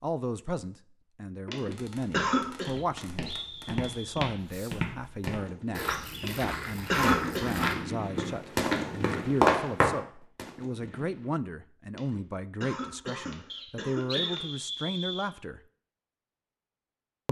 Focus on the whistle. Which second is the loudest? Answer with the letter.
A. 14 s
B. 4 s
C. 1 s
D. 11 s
A.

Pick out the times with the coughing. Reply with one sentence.
The coughing can be heard from 1.4 to 2.7 s, from 6.2 to 7.5 s and from 11.9 to 14.4 s.